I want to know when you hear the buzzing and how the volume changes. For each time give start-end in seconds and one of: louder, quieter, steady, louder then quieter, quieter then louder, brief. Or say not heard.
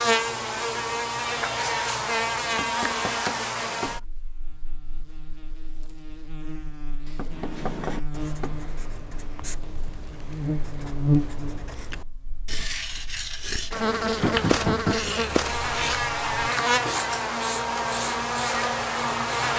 0.0-19.5 quieter then louder.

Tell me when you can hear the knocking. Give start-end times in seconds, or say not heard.
2.5-4.0, 7.0-8.6, 14.2-15.0.